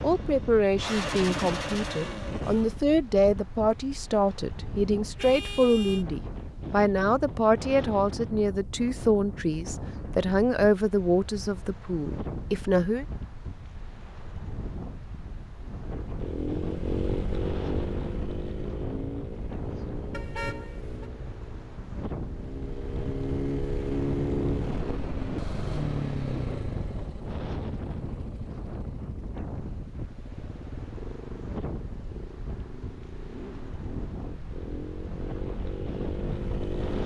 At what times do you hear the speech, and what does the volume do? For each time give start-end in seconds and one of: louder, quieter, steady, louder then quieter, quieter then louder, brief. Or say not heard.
0.0-13.1 steady.